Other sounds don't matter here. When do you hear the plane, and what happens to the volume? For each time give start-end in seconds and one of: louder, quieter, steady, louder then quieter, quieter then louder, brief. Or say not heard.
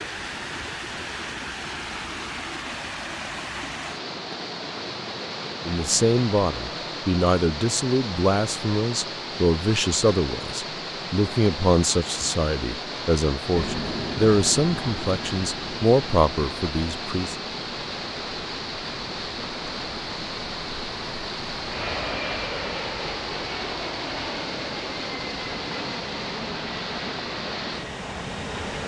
13.5-28.8 quieter then louder.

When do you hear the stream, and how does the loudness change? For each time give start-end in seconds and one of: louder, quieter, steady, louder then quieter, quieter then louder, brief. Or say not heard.
0.0-28.8 steady.